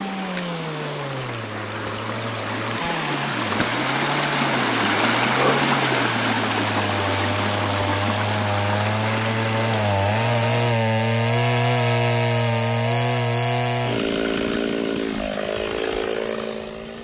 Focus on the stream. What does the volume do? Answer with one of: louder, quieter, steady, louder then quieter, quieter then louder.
louder then quieter.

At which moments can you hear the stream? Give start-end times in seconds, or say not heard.
0.0-10.8.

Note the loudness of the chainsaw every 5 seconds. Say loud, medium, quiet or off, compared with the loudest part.
medium, medium, loud, medium.